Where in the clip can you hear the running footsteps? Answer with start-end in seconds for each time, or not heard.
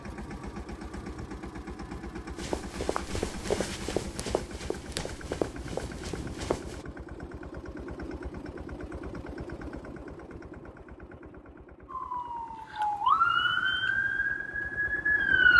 2.4-6.8.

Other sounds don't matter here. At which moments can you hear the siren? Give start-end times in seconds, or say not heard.
11.9-15.5.